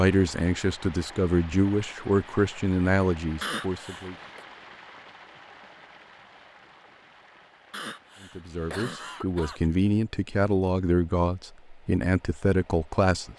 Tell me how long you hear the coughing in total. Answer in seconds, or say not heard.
3 s.